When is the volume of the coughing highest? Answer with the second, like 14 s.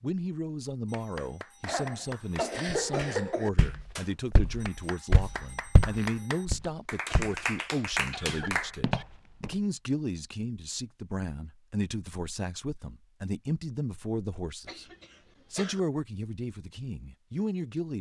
3 s.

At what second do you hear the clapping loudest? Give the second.
8 s.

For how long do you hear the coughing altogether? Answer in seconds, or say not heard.
5 s.